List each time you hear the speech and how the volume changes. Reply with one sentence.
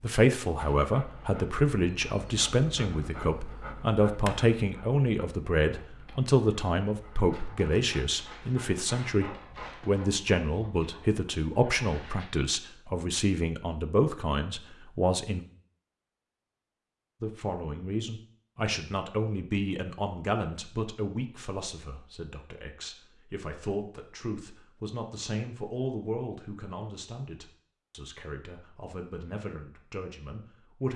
The speech can be heard from 0.0 to 15.4 s, at a steady volume; and from 17.2 to 30.9 s, getting quieter.